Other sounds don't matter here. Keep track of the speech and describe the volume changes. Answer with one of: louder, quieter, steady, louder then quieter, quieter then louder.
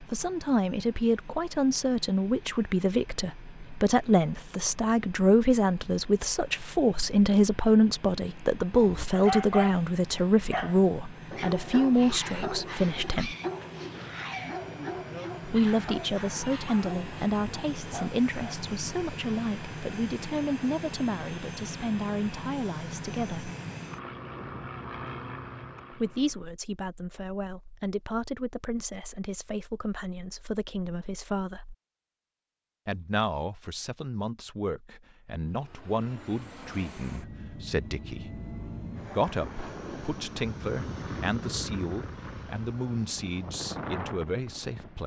quieter.